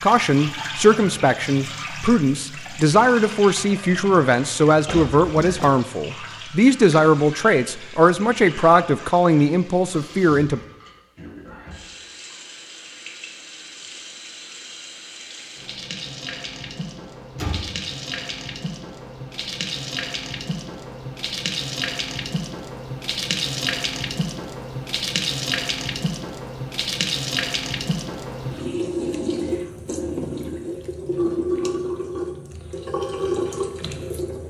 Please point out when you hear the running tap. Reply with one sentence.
The running tap can be heard from 0.0 to 34.4 s.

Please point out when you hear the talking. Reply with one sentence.
You can hear the talking from 0.0 to 10.6 s.